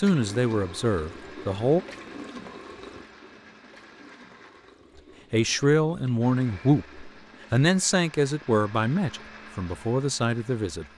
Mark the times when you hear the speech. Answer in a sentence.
You can hear the speech from 0.0 to 1.8 s and from 5.3 to 10.8 s.